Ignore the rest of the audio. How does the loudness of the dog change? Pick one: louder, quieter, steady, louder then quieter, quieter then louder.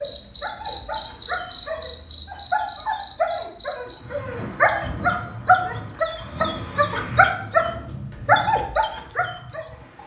louder.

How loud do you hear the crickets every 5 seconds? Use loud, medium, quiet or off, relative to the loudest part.
loud, medium.